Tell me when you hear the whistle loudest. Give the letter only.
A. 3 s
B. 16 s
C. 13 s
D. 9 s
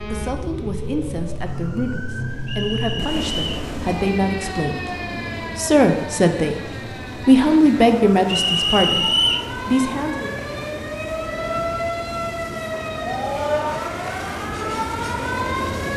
D.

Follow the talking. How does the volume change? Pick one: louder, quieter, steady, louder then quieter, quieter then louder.
louder then quieter.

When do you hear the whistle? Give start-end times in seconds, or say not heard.
2.5-3.6, 8.2-9.5.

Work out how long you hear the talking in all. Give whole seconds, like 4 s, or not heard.
10 s.